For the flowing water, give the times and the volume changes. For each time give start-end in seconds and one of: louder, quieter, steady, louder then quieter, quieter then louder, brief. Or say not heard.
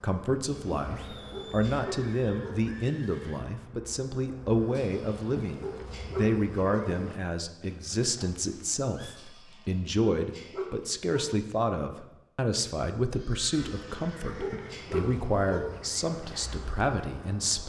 not heard.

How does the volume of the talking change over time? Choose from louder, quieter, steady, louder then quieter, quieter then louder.
steady.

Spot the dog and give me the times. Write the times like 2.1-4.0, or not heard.
0.5-2.6, 4.8-6.9, 9.2-11.3, 13.6-15.7.